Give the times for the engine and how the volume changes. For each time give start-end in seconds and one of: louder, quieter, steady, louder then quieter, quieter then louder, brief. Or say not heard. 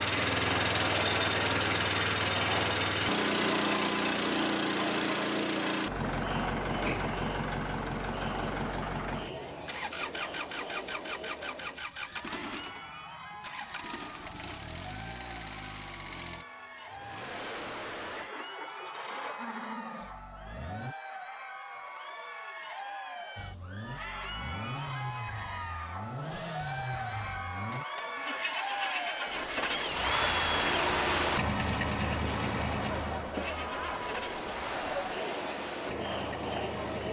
0.0-20.9 quieter
23.4-37.0 louder then quieter.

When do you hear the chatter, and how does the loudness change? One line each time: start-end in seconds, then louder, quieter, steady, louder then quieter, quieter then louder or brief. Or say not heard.
0.0-37.0 quieter then louder.